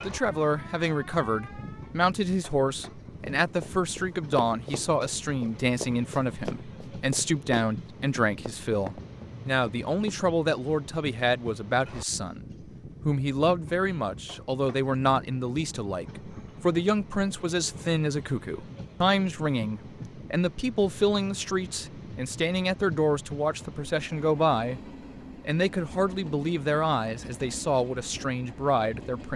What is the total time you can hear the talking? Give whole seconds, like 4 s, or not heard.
29 s.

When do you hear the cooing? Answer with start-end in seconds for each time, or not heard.
not heard.